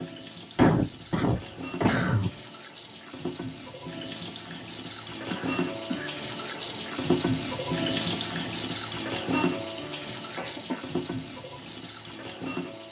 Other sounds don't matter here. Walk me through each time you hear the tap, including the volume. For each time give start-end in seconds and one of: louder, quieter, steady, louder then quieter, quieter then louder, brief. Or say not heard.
0.0-12.8 louder then quieter.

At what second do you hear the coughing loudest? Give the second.
1 s.